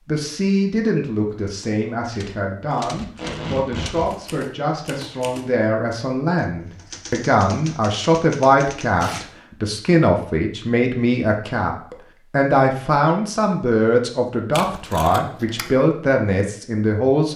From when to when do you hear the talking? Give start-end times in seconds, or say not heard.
0.1-17.3.